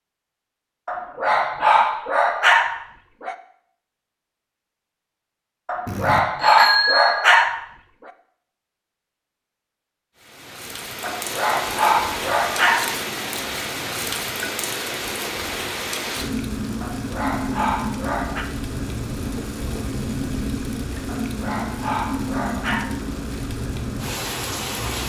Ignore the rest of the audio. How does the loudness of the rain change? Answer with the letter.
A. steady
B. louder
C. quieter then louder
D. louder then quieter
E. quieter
A.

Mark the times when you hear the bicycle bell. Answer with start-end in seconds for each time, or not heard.
5.8-7.5.